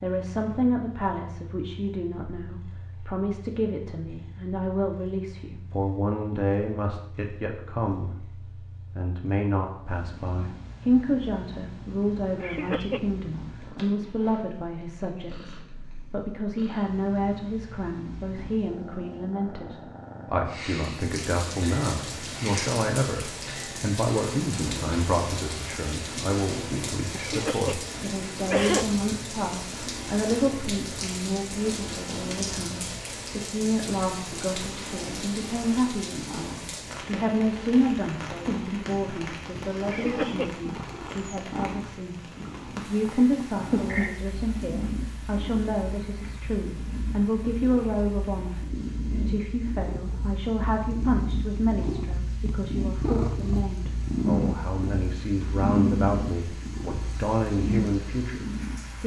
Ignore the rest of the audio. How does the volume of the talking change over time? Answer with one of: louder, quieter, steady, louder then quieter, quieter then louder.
steady.